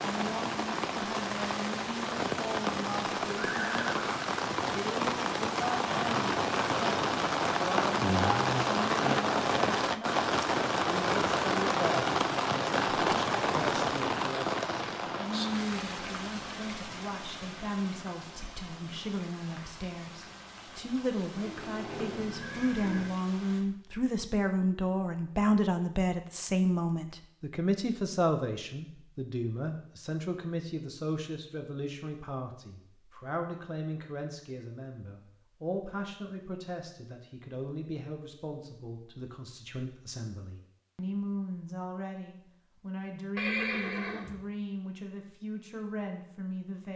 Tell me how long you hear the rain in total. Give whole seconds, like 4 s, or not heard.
24 s.